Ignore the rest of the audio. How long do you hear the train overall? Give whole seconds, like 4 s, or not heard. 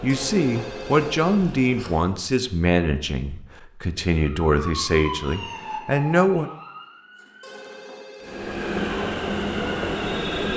4 s.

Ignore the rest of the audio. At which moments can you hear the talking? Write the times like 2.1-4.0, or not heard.
0.0-6.5.